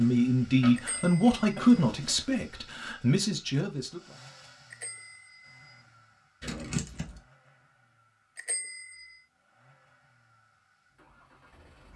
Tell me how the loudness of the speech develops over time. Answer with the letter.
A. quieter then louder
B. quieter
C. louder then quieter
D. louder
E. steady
A.